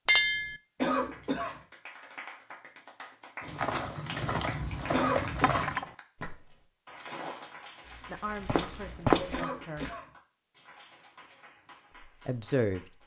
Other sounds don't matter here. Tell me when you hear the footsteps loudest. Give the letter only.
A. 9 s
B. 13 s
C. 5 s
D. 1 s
A.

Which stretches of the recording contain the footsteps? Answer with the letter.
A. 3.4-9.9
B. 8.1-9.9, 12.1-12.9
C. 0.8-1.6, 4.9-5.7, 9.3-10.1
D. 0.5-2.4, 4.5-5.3
A.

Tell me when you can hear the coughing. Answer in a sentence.
The coughing can be heard from 0.8 to 1.6 s, from 4.9 to 5.7 s and from 9.3 to 10.1 s.